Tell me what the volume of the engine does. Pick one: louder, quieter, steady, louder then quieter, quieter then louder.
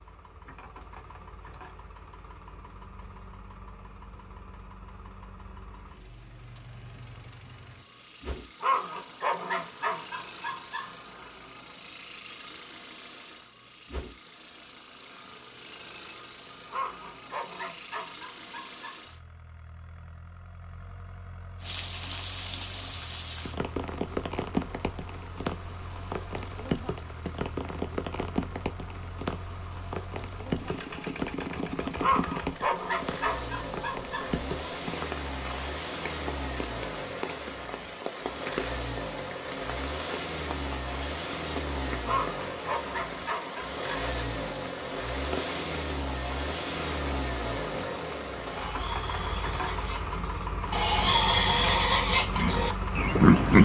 louder.